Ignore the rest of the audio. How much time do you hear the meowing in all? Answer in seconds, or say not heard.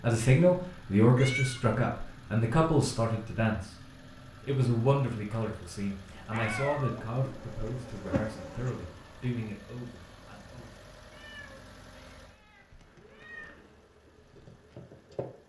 4 s.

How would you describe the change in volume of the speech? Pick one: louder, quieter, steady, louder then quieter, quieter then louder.
quieter.